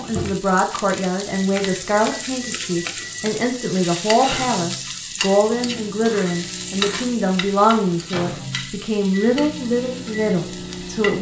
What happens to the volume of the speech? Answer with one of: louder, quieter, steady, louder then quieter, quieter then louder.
steady.